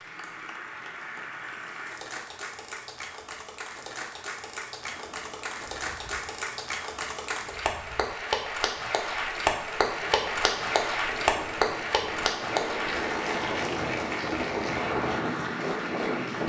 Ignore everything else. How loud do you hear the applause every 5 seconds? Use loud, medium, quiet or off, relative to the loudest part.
medium, loud, loud, medium.